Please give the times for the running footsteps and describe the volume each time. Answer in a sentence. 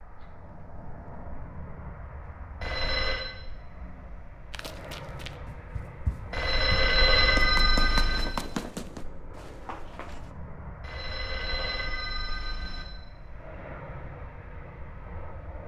The running footsteps can be heard from 4.5 to 10.3 s, getting louder then quieter.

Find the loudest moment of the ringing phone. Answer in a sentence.
The volume of the ringing phone peaks at 7 seconds.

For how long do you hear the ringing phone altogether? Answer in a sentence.
The ringing phone can be heard for 5 seconds in total.